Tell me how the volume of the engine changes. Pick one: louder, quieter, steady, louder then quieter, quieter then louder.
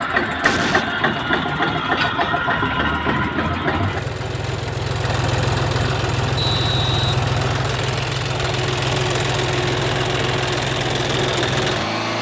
steady.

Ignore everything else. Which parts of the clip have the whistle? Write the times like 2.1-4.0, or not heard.
6.3-7.2.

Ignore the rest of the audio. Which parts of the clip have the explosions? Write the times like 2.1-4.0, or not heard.
0.4-0.8.